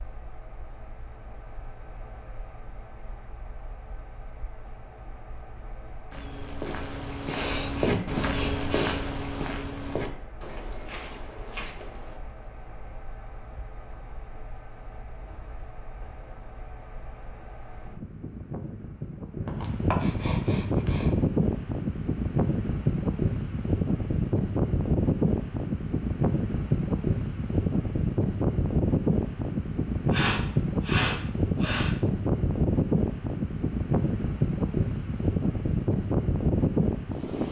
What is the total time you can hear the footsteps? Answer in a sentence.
You can hear the footsteps for 6 seconds altogether.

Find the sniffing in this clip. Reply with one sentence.
You can hear the sniffing from 7.2 to 9.0 s, from 19.4 to 21.1 s and from 30.1 to 31.9 s.